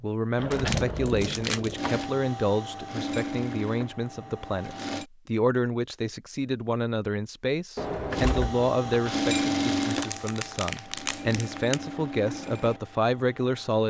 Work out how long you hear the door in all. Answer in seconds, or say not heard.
3 s.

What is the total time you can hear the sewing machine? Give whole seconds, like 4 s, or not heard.
9 s.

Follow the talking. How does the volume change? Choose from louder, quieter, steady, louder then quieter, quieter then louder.
steady.